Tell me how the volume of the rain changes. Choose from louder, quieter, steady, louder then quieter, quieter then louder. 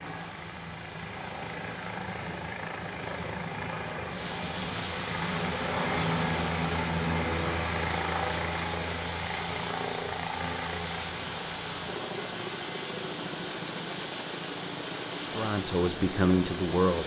louder.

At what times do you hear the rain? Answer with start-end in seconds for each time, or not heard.
0.0-17.0.